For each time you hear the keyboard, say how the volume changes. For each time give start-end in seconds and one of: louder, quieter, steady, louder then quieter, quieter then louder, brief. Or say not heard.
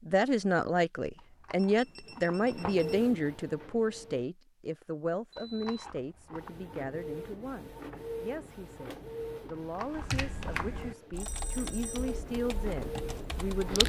9.8-13.8 quieter.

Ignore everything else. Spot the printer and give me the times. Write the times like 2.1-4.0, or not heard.
2.0-4.2, 6.3-13.8.